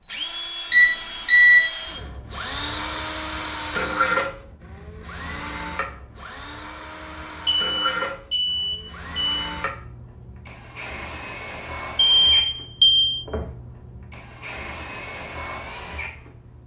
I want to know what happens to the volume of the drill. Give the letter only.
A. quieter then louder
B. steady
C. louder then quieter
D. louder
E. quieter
E.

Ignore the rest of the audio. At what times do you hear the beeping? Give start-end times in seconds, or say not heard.
0.7-1.6, 7.5-9.4, 12.2-13.2.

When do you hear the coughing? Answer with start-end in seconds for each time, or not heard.
not heard.